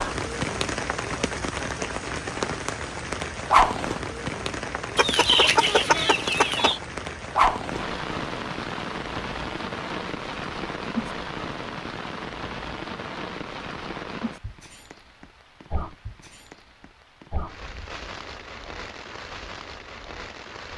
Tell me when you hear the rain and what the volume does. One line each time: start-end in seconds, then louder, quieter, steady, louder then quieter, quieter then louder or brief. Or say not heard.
0.0-20.7 quieter.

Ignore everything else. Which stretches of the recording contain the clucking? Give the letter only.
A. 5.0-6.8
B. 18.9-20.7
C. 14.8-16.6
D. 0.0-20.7
A.